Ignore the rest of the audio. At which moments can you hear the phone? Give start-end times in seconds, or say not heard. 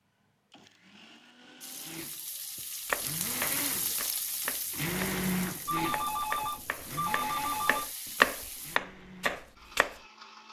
5.7-7.9.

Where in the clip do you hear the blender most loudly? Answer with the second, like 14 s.
5 s.